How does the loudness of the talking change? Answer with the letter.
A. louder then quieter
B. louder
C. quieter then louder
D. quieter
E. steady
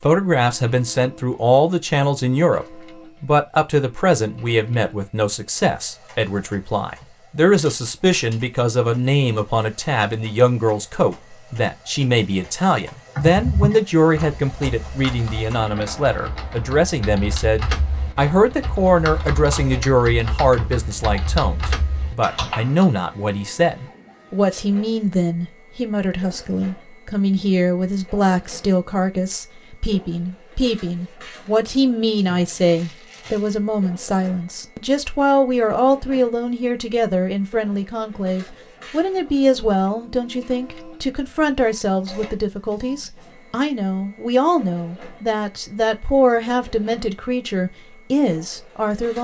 E.